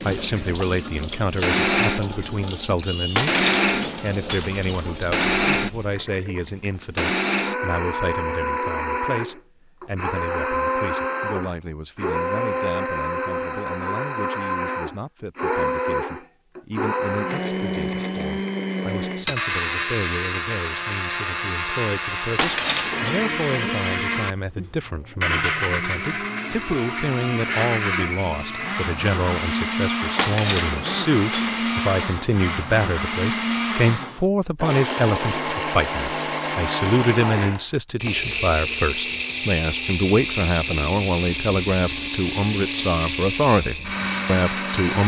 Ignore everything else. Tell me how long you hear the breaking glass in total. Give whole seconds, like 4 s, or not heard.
4 s.